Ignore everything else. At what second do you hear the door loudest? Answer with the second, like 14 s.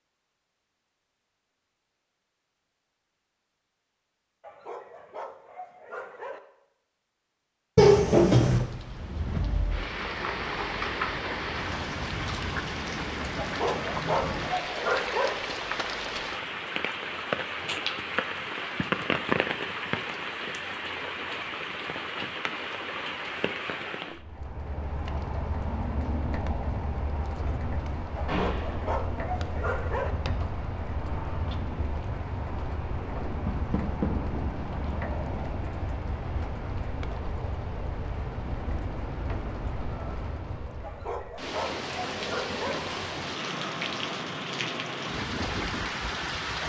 8 s.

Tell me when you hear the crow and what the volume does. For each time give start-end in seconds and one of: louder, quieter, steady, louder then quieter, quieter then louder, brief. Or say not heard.
not heard.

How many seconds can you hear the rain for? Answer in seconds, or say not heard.
38 s.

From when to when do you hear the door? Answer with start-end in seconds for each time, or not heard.
7.8-8.7, 28.2-28.8, 33.5-34.1.